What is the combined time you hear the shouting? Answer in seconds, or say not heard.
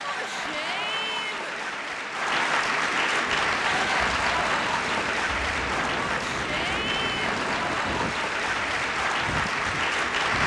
3 s.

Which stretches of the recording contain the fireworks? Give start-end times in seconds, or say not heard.
not heard.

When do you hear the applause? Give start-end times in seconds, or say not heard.
0.0-10.4.